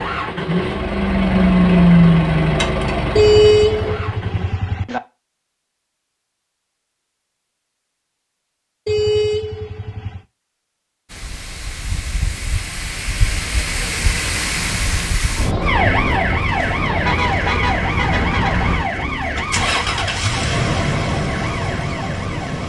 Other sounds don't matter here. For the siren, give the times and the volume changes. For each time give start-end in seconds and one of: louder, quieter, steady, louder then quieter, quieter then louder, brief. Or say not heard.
15.6-22.6 quieter.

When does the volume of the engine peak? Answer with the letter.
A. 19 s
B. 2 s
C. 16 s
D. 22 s
B.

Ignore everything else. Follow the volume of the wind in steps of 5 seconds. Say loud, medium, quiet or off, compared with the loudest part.
off, off, loud, loud, medium.